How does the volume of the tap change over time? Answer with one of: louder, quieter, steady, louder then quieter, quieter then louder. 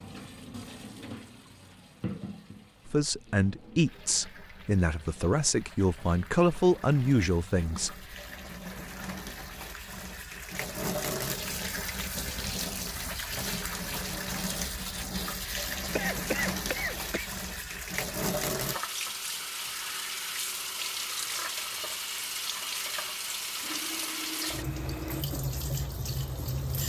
louder.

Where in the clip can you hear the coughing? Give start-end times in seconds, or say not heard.
15.9-17.3.